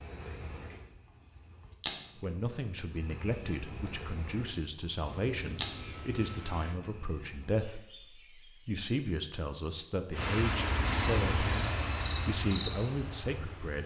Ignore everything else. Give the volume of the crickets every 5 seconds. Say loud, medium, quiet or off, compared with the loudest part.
loud, loud, quiet.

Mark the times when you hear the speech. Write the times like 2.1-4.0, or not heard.
2.2-13.8.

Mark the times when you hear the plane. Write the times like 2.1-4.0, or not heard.
5.0-6.8, 10.1-13.8.